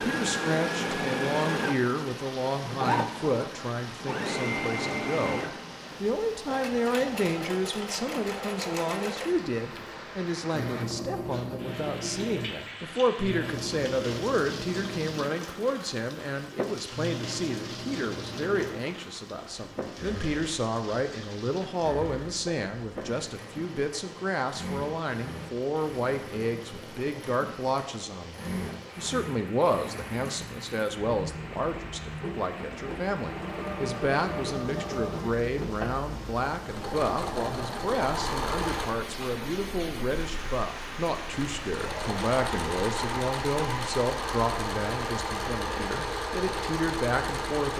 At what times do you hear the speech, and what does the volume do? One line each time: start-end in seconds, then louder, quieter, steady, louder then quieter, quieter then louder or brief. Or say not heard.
0.0-47.7 steady.